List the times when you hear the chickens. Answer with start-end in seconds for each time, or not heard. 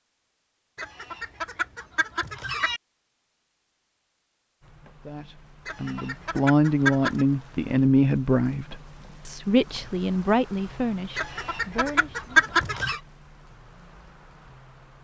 0.8-2.8, 5.7-7.2, 11.2-13.0.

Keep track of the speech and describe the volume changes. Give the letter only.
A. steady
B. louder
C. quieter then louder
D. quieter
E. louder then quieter
D.